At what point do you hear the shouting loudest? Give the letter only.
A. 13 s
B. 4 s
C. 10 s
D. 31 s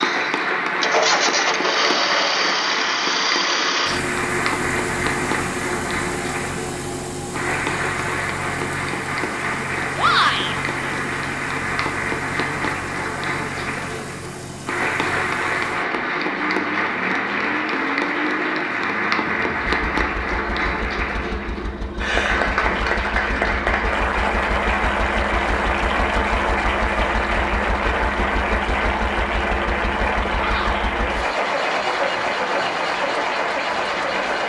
C.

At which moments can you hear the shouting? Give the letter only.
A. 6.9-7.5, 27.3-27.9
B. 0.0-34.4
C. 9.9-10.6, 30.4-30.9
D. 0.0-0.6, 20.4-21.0
C.